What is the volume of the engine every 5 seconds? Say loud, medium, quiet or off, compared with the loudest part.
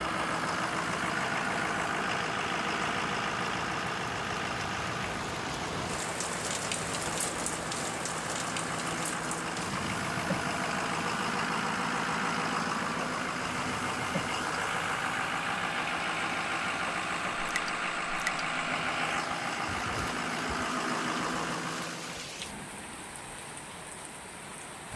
loud, medium, loud, loud, loud.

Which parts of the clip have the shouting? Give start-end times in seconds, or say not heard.
not heard.